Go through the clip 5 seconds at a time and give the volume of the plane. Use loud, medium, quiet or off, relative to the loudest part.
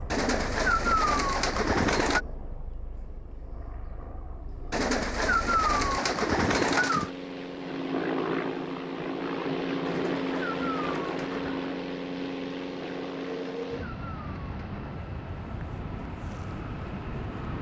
quiet, loud, loud, medium.